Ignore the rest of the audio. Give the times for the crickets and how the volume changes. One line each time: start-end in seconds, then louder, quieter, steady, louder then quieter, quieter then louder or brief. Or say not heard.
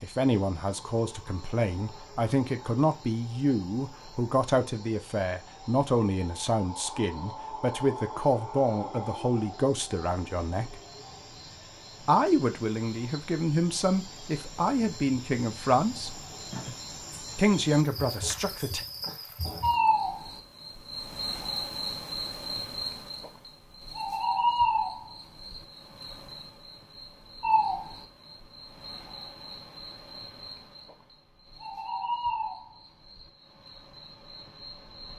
0.0-35.1 louder then quieter.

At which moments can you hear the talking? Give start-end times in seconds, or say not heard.
0.0-10.8, 12.0-16.2, 17.4-18.8.